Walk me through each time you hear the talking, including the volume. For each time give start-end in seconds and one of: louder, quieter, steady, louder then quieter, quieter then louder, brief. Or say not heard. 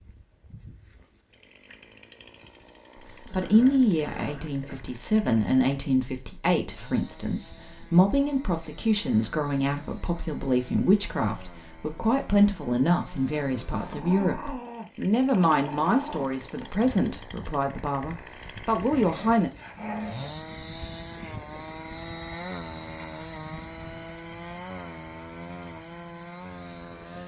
3.1-19.5 steady.